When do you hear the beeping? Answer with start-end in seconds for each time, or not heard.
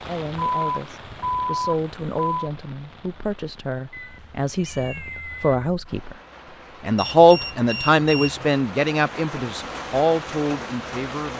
0.3-2.5, 7.0-8.4.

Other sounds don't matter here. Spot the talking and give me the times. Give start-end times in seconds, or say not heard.
0.1-6.2, 6.8-11.3.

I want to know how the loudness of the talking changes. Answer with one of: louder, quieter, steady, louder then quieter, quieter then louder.
louder then quieter.